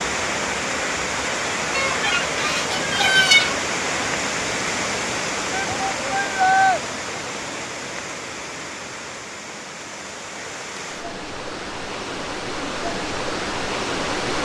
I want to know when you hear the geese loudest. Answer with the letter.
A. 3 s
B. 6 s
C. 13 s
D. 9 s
A.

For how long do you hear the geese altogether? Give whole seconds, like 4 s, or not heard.
2 s.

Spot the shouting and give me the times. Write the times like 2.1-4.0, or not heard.
5.5-6.8.